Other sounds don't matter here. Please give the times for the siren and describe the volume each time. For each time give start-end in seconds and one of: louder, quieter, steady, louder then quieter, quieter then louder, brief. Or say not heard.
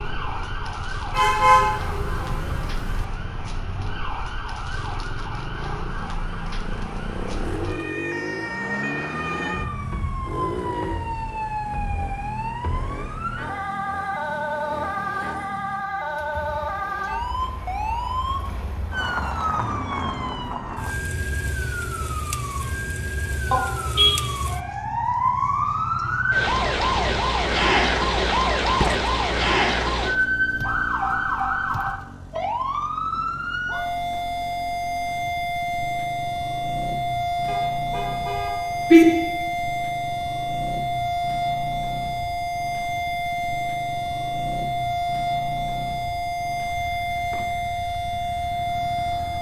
0.0-49.3 louder.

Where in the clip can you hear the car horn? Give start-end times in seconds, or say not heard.
1.1-3.0, 23.5-24.1, 37.5-39.0.